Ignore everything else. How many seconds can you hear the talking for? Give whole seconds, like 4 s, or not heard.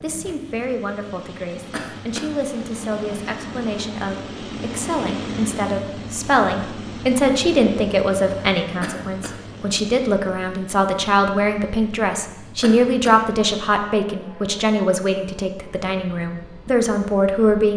18 s.